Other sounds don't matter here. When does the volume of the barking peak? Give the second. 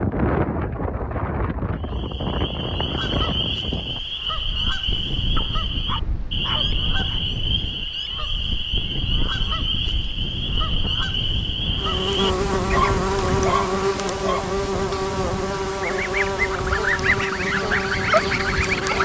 13 s.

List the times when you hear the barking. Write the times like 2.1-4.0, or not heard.
5.3-7.2, 12.7-14.4.